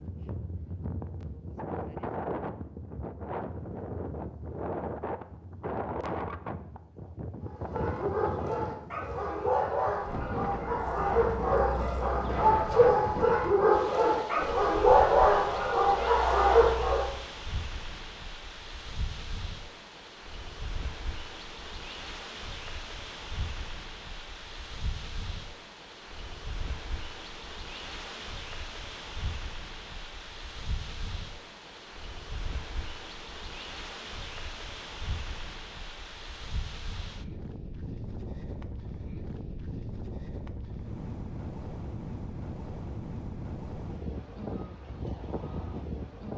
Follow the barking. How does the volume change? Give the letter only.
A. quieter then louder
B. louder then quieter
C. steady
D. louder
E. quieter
D.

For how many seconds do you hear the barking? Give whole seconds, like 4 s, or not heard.
10 s.